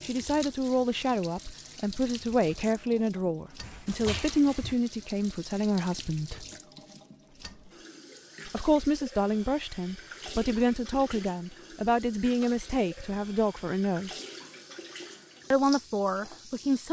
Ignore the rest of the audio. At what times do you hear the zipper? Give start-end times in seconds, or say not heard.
not heard.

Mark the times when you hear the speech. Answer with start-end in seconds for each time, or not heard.
0.0-6.5, 8.4-14.2, 15.5-16.8.